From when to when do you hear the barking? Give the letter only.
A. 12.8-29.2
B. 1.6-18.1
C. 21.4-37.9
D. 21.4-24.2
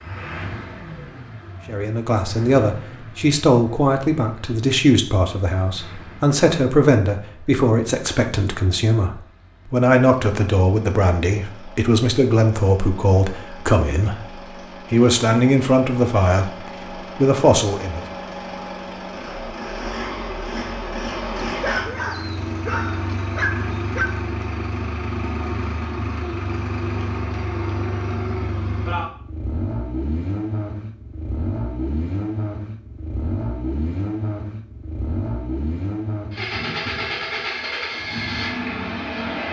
D.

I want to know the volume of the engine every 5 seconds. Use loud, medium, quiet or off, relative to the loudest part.
medium, quiet, quiet, medium, loud, loud, loud, loud.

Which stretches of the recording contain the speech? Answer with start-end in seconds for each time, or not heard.
1.6-18.1.